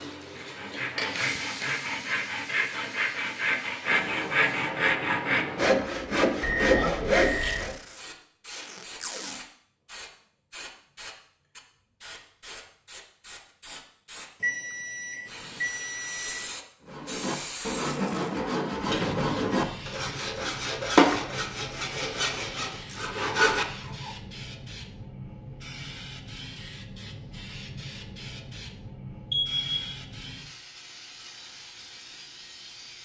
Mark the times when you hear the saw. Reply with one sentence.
The saw can be heard from 0.3 to 7.8 s and from 16.9 to 24.1 s.